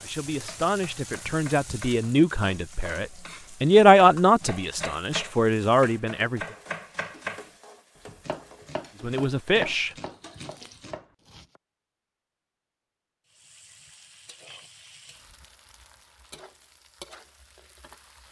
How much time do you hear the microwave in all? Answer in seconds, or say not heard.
not heard.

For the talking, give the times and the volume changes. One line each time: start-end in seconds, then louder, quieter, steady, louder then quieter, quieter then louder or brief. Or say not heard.
0.0-6.5 louder then quieter
9.0-9.9 brief.